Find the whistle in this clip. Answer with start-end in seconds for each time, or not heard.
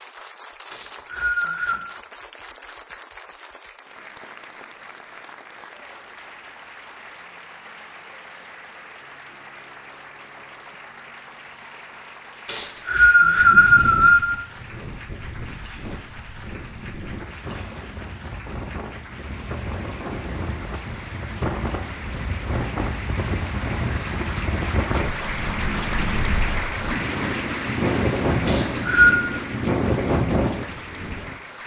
0.7-1.8, 12.4-14.2, 28.4-29.1.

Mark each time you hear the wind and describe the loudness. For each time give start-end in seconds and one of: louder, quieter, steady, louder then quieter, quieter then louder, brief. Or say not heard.
13.2-31.6 louder.